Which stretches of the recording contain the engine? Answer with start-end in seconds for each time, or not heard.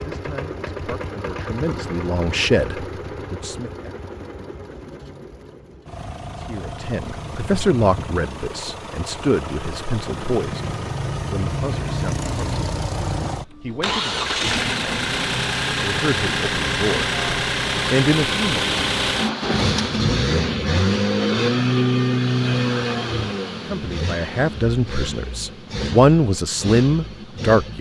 0.0-27.7.